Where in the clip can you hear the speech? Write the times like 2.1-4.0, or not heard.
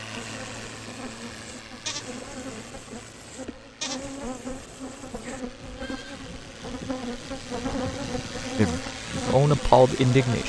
8.6-10.4.